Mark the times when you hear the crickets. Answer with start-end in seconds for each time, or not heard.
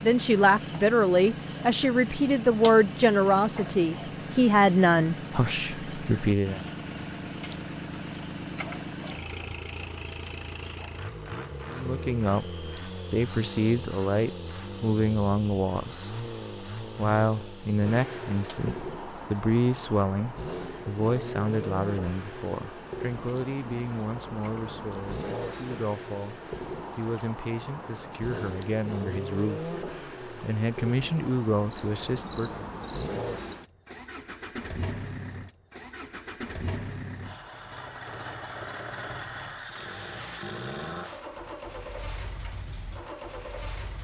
0.0-33.5.